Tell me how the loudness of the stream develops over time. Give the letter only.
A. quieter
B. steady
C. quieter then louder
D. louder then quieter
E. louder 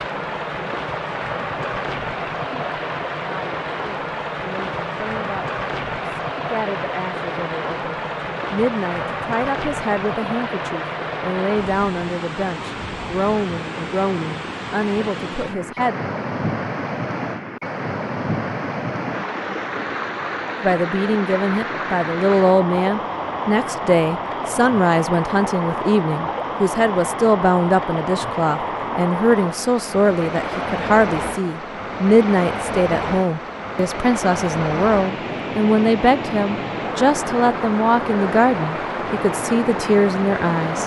B.